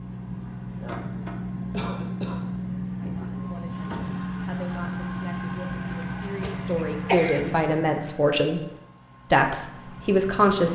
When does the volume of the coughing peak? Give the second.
7 s.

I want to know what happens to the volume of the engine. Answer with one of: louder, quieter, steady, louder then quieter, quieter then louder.
quieter.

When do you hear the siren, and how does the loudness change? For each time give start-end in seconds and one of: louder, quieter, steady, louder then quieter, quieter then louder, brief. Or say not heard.
not heard.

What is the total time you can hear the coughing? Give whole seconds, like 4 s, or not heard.
3 s.